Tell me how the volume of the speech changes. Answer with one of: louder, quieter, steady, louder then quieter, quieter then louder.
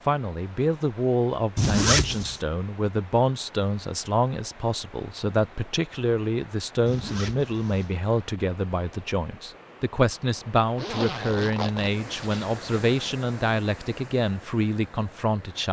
steady.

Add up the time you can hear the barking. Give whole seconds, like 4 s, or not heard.
not heard.